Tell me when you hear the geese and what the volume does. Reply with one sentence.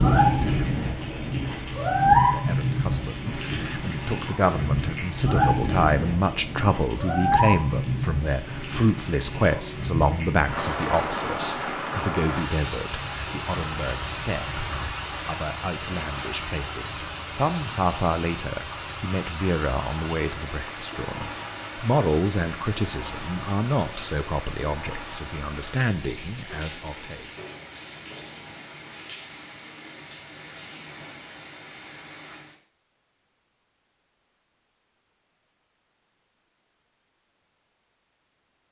The geese can't be heard in this clip.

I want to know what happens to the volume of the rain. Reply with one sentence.
The volume of the rain goes down.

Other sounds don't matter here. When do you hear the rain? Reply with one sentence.
The rain can be heard from 0.0 to 32.6 s.